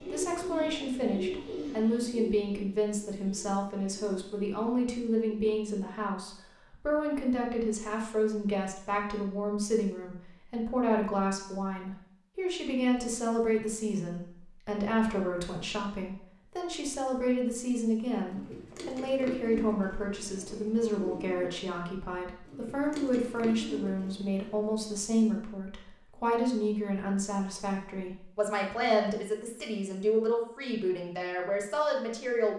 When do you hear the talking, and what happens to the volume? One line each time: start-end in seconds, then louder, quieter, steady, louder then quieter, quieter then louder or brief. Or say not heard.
0.0-32.5 steady.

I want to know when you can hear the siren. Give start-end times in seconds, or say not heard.
not heard.